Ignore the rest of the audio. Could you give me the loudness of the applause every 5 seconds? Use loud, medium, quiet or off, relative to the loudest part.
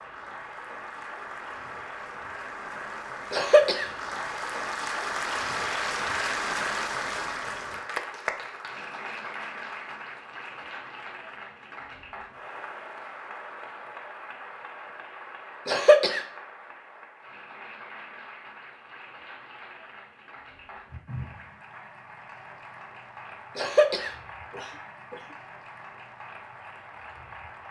medium, loud, medium, quiet, quiet, quiet.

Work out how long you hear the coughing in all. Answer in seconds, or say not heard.
3 s.